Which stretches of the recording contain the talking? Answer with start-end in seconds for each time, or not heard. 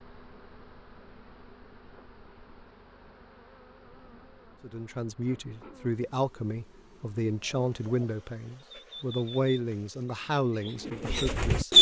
4.6-11.7.